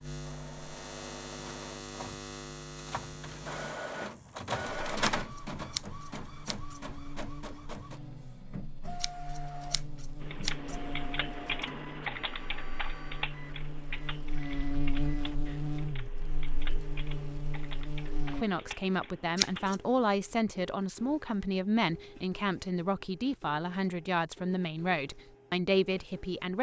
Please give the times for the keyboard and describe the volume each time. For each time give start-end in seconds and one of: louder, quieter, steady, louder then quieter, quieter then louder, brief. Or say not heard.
10.2-19.8 quieter.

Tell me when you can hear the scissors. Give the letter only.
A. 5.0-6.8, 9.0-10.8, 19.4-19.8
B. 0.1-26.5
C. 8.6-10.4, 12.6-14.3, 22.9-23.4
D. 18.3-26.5
A.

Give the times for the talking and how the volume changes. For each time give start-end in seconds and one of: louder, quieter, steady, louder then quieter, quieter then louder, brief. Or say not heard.
18.3-26.5 steady.